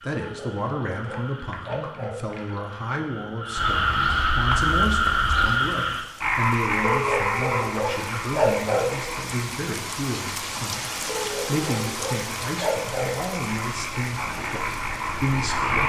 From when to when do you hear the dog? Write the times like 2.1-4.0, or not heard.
0.1-2.1, 6.8-8.8, 11.1-13.1.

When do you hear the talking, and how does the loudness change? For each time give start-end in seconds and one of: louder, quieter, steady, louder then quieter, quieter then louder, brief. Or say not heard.
0.0-15.8 steady.